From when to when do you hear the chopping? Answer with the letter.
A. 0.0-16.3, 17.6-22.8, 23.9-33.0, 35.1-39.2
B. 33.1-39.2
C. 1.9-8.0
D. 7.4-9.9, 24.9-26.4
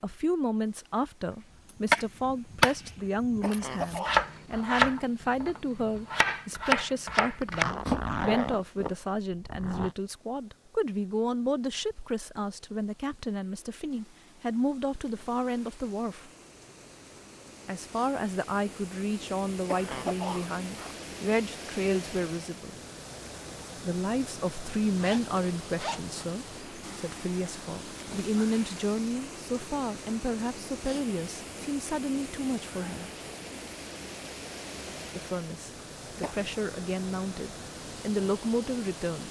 C.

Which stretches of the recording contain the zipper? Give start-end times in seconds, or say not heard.
7.4-9.9, 24.9-26.4.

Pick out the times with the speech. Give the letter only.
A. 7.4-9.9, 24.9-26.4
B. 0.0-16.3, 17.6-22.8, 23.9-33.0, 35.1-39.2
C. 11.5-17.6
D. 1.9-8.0
B.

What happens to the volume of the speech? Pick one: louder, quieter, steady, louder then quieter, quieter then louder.
steady.